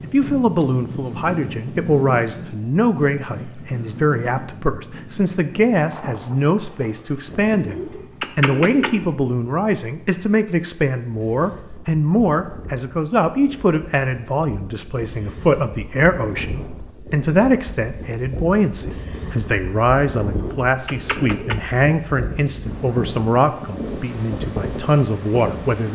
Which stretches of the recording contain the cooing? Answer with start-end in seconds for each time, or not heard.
7.5-9.1, 20.2-21.6.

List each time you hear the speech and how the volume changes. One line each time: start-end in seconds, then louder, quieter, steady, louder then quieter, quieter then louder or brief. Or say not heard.
0.0-25.9 steady.